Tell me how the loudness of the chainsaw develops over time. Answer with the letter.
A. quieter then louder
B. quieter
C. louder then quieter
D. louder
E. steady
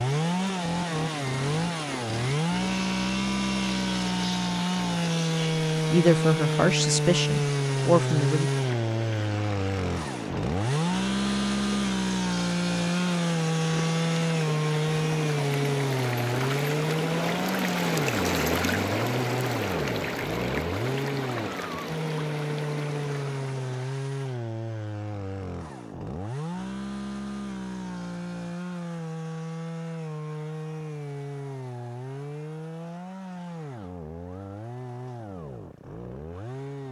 B.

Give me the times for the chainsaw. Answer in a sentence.
You can hear the chainsaw from 0.0 to 36.8 s.